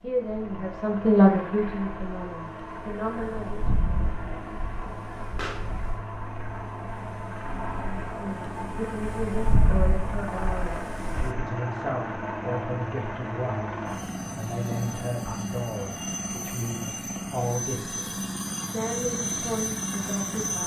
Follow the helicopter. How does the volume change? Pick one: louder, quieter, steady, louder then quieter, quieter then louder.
louder.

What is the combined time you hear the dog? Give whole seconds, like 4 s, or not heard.
not heard.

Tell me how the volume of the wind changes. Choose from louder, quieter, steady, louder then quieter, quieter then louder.
quieter then louder.